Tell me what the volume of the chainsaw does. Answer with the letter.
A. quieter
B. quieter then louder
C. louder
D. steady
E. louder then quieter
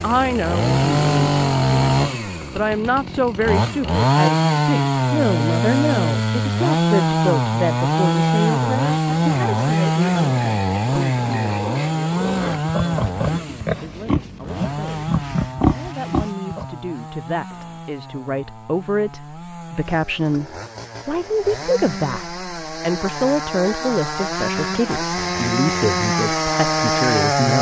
B.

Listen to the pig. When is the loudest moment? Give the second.
16 s.